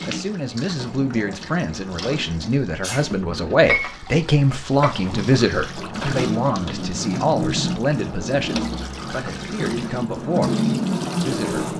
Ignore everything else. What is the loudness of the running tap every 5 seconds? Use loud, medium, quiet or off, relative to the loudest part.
medium, medium, loud.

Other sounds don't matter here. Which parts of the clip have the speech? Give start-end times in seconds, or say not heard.
0.1-10.6, 11.2-11.7.